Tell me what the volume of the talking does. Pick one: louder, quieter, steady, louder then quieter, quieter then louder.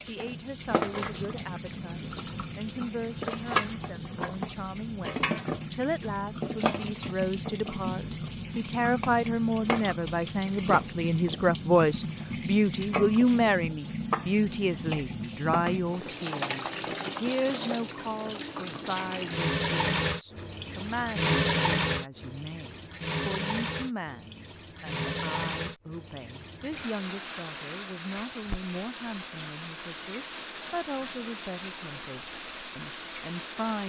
louder then quieter.